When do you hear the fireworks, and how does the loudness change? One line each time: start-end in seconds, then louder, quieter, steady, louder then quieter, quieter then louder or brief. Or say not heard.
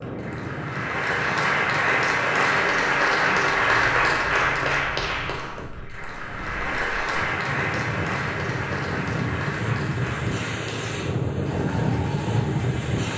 not heard.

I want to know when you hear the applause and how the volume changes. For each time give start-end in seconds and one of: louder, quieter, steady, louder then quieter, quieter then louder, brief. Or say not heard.
0.0-13.1 quieter.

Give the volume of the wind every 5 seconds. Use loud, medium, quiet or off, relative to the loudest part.
medium, medium, loud.